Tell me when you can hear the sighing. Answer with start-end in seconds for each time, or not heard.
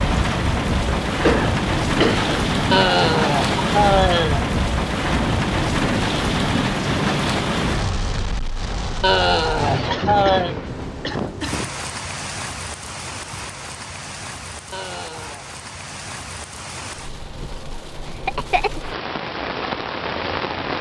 2.7-4.5, 9.0-10.6, 14.7-15.4.